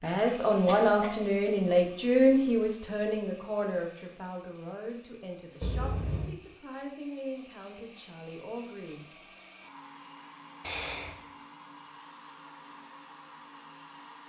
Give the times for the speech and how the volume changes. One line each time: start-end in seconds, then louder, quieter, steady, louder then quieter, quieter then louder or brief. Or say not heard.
0.0-9.1 quieter.